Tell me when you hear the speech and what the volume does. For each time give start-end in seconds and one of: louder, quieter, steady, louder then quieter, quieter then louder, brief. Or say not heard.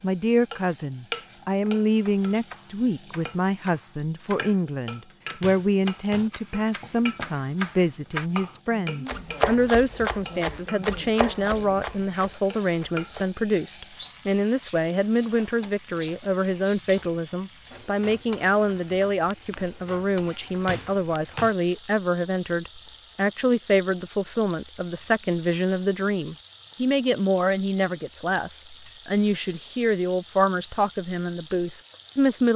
0.0-32.5 steady.